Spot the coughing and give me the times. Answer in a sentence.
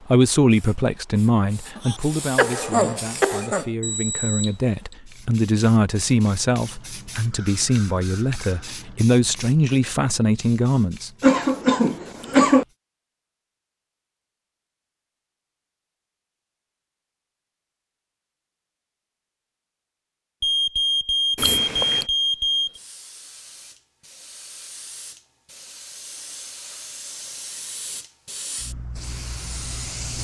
You can hear the coughing from 1.8 to 3.6 s, from 11.2 to 12.7 s and from 21.4 to 22.1 s.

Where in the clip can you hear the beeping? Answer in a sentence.
The beeping can be heard from 3.8 to 5.0 s and from 20.4 to 22.8 s.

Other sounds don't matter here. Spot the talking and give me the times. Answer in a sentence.
You can hear the talking from 0.1 to 11.1 s.